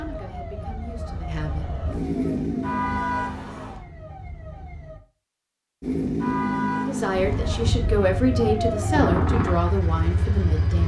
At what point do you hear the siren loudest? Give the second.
9 s.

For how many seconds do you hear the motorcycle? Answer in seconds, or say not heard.
9 s.